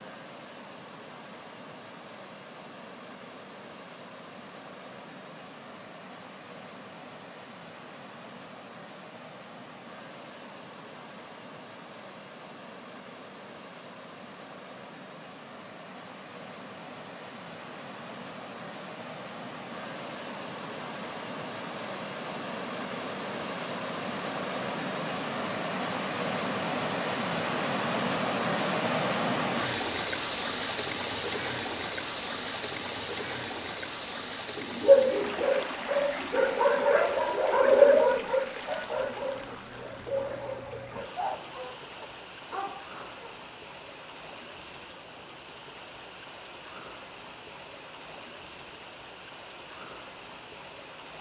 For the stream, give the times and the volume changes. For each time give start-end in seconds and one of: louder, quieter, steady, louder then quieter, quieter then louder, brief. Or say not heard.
0.0-51.1 louder then quieter.